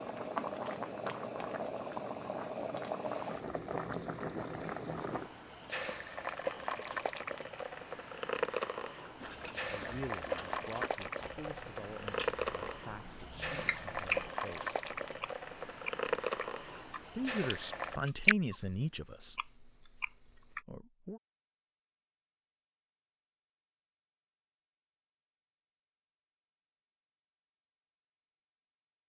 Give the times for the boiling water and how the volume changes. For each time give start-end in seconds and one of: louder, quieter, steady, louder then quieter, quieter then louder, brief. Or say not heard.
0.0-18.0 steady.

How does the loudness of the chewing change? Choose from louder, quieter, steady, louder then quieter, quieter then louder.
louder.